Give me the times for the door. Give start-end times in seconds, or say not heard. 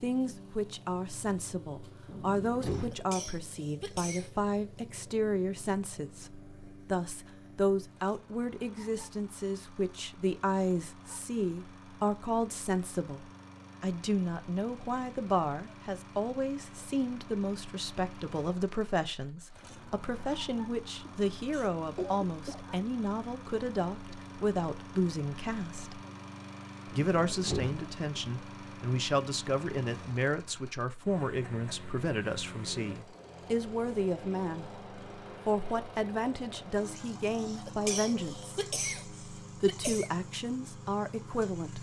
2.0-3.0, 26.9-28.3.